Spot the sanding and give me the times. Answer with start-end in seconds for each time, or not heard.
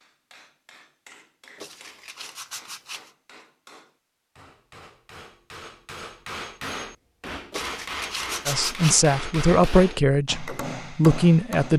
1.6-3.1, 7.5-9.0.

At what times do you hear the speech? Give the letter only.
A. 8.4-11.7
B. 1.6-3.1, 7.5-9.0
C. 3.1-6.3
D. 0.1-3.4
A.